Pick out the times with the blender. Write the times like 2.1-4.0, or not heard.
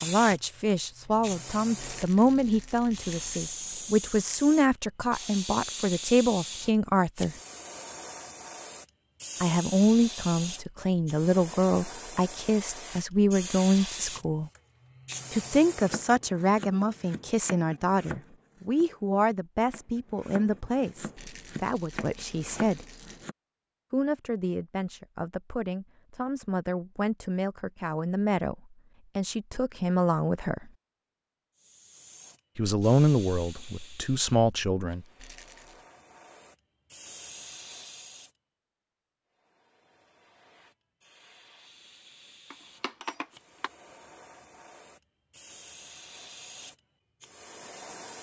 not heard.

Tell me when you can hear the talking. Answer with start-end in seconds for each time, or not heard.
0.0-7.3, 9.4-14.5, 15.3-22.9, 23.9-30.7, 32.5-35.0.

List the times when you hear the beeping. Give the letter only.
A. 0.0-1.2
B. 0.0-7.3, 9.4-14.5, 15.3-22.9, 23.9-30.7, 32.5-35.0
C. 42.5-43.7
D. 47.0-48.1
C.